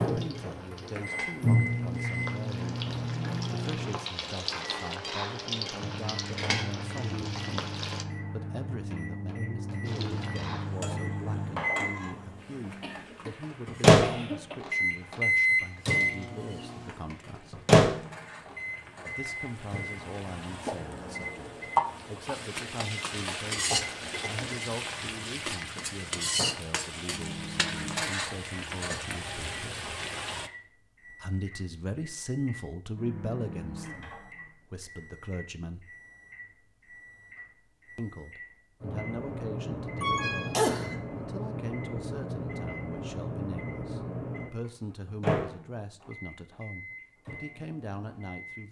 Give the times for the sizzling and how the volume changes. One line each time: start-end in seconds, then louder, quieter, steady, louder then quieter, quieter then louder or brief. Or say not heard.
0.0-8.1 louder
9.8-30.5 quieter then louder.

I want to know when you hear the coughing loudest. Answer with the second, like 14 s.
41 s.